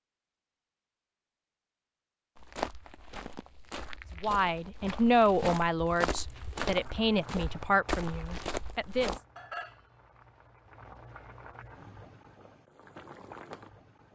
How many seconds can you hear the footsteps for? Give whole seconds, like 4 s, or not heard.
7 s.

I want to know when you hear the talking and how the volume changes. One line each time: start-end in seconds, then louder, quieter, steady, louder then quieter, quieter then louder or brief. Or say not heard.
4.2-9.2 quieter.